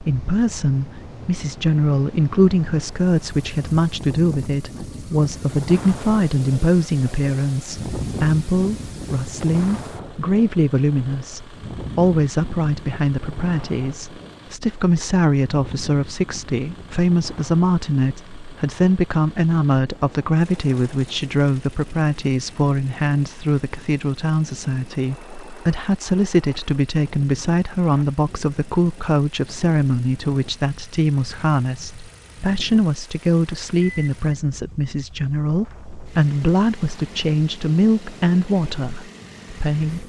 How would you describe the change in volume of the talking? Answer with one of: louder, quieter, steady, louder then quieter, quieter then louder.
steady.